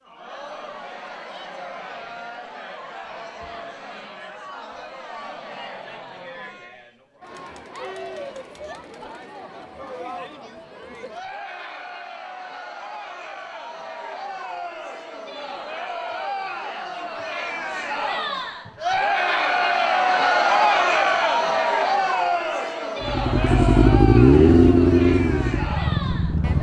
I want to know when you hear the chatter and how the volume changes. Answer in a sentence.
You can hear the chatter from 0.0 to 26.5 s, getting louder.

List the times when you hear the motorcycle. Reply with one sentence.
You can hear the motorcycle from 23.0 to 26.5 s.